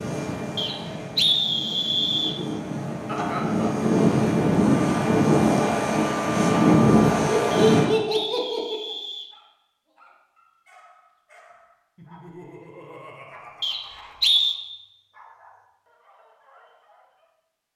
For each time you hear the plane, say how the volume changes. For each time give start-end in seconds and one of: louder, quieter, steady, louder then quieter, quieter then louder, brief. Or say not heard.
0.0-7.9 louder.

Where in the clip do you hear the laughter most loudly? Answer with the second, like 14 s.
8 s.